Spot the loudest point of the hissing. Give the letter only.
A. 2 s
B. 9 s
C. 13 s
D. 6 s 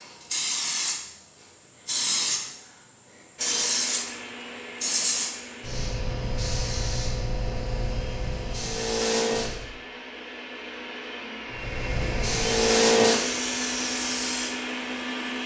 C.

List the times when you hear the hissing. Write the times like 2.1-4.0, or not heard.
0.0-9.7, 11.5-15.4.